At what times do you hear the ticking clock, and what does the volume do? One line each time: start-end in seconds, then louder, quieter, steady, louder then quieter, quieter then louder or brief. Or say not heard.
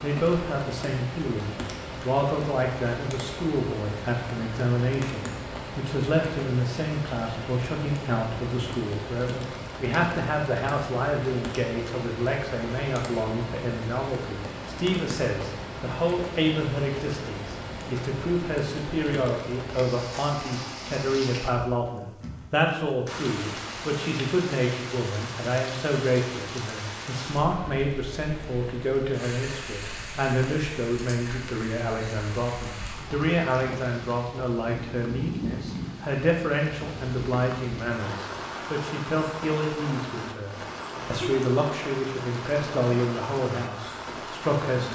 not heard.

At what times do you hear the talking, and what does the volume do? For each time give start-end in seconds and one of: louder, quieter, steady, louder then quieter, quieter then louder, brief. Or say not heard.
0.0-44.9 steady.